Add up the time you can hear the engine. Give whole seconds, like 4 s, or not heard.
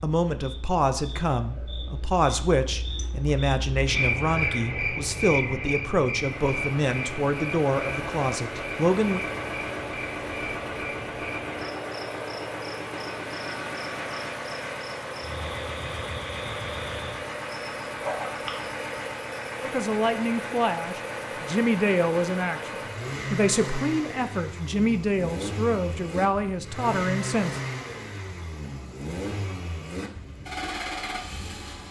26 s.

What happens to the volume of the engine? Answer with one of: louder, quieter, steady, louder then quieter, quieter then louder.
steady.